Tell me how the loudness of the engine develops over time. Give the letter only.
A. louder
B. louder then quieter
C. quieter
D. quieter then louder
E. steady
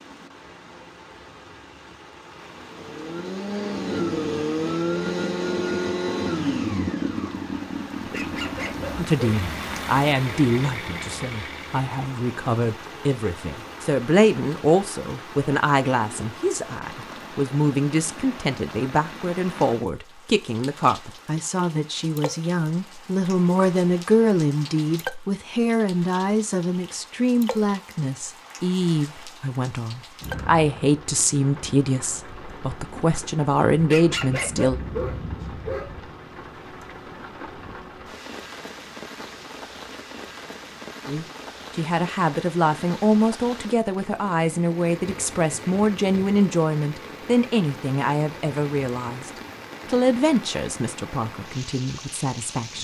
C.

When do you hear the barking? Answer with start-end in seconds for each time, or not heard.
8.0-9.8, 33.8-36.2.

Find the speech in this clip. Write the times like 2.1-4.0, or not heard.
8.9-34.8, 41.0-52.7.